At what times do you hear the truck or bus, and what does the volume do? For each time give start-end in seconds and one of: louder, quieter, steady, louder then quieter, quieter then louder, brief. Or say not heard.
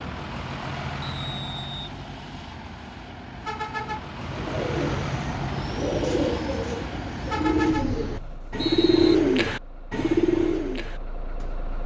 0.0-11.8 quieter.